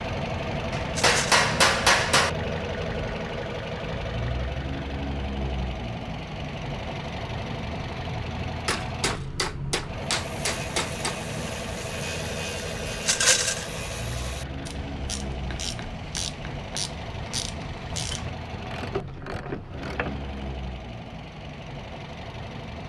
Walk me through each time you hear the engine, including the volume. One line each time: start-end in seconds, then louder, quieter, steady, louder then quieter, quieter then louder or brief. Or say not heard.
0.0-22.8 quieter.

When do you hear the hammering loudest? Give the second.
2 s.